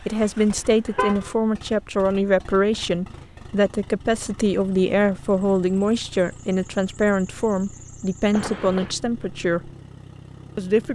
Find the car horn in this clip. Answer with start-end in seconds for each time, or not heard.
0.1-1.4, 8.3-8.9.